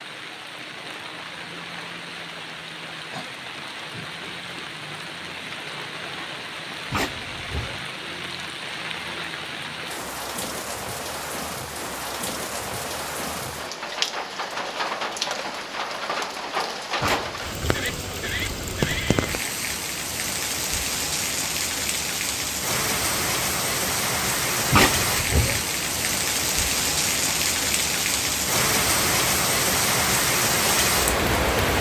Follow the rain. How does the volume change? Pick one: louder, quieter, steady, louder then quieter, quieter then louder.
louder.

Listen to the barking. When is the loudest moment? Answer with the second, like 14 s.
25 s.